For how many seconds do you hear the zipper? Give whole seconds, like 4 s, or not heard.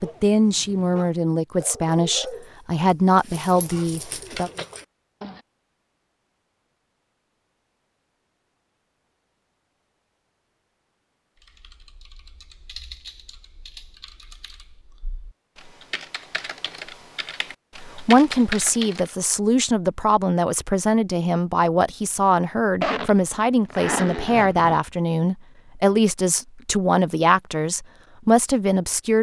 2 s.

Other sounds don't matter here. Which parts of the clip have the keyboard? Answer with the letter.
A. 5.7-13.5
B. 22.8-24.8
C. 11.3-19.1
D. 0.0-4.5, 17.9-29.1
C.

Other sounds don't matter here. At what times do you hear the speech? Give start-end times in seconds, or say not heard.
0.0-4.5, 17.9-29.1.